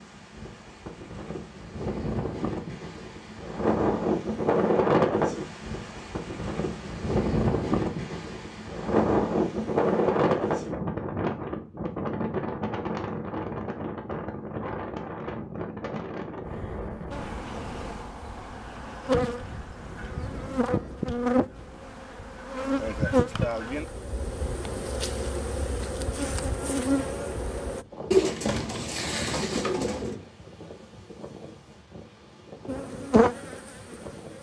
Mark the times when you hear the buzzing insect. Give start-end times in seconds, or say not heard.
17.1-27.9, 32.6-34.3.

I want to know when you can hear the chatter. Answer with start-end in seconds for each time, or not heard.
not heard.